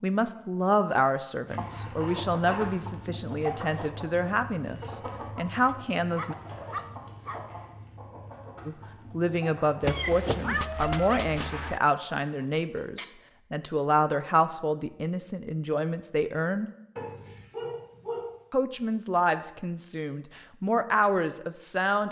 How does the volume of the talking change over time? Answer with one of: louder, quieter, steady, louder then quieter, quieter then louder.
steady.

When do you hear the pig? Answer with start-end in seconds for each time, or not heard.
not heard.